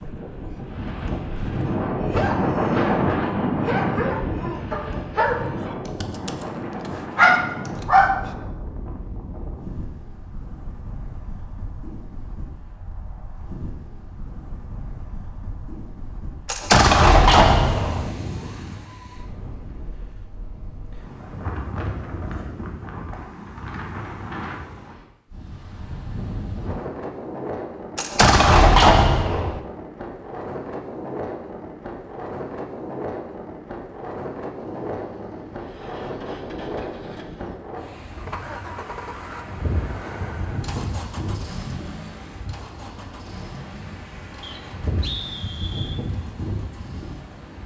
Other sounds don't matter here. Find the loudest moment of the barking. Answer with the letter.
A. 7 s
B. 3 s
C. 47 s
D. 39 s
A.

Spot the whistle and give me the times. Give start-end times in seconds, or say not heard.
44.4-46.0.